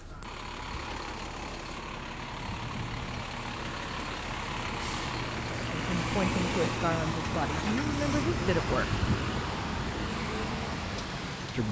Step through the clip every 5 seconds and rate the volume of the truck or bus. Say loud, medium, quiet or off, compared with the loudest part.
medium, loud, loud.